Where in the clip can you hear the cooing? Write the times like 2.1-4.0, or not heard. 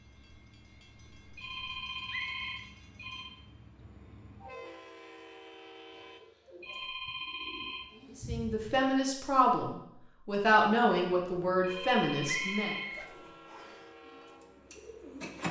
5.9-8.9, 12.9-15.4.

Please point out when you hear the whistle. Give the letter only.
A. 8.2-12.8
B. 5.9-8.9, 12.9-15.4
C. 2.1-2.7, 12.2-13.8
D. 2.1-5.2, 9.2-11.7
C.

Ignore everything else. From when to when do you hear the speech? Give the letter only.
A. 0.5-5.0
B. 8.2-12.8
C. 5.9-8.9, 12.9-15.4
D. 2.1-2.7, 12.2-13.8
B.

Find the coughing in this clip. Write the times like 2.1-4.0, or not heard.
not heard.